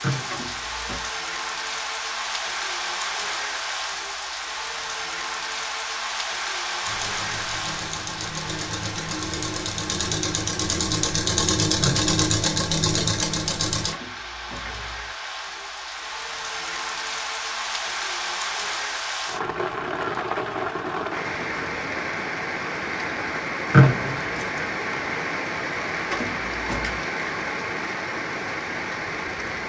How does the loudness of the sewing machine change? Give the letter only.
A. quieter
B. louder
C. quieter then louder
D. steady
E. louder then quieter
B.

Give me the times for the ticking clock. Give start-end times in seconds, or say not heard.
not heard.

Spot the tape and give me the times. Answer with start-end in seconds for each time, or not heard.
not heard.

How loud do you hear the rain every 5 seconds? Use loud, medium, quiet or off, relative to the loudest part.
loud, loud, medium, loud, loud, loud.